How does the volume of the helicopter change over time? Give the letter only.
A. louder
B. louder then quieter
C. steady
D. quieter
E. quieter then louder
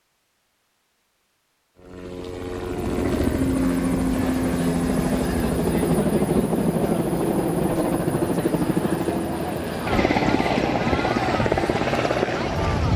C.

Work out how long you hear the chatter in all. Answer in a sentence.
The chatter can be heard for 9 seconds in total.